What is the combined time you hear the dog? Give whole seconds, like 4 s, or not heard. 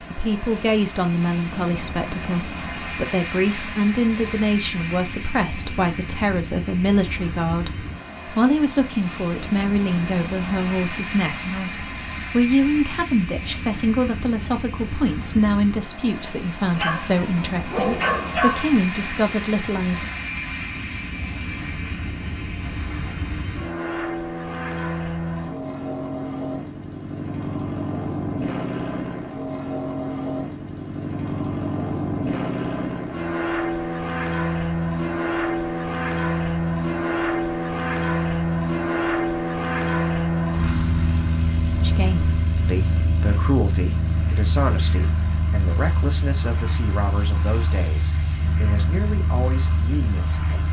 2 s.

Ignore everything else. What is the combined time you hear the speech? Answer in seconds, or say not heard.
29 s.